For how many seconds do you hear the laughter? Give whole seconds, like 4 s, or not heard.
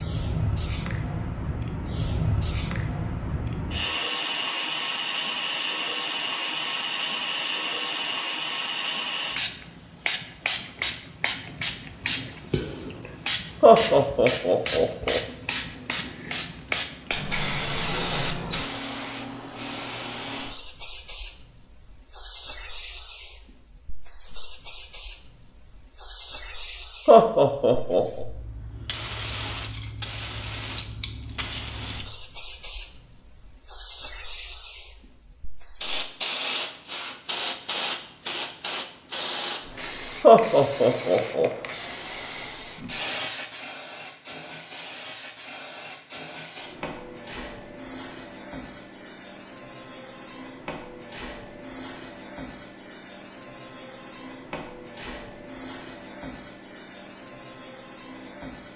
4 s.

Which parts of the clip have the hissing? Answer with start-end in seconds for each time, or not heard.
0.0-58.7.